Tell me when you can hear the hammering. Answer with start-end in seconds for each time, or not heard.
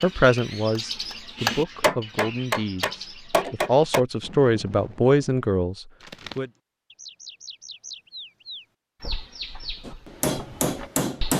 0.0-4.0, 9.8-11.3.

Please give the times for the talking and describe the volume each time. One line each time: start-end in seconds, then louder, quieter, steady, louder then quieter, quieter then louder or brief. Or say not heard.
0.0-6.5 louder.